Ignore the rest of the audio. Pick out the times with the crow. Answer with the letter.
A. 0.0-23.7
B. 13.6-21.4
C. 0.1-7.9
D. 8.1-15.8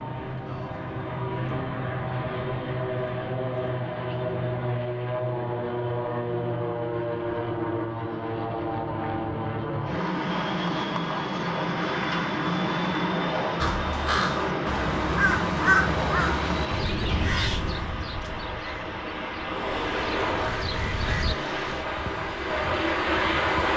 B.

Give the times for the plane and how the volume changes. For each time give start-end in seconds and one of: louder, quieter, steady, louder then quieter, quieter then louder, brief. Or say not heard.
0.0-23.7 steady.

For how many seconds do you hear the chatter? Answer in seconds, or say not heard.
not heard.